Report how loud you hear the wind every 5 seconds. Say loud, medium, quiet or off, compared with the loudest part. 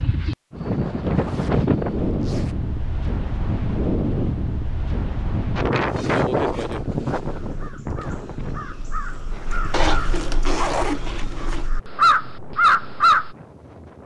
loud, loud, quiet.